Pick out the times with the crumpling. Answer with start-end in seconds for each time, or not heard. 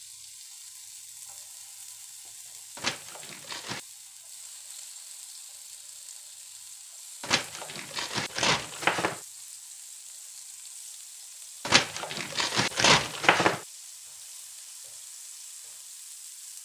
2.8-3.8, 7.2-9.2, 11.7-13.6.